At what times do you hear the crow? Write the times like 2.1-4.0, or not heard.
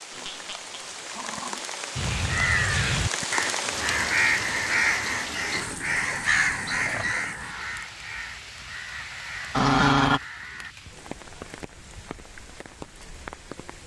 1.9-10.8.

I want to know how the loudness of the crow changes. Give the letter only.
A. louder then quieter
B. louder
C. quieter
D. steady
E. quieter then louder
C.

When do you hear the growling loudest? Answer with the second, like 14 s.
10 s.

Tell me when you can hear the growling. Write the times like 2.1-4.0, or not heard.
0.1-1.6, 5.5-7.3, 9.5-10.2.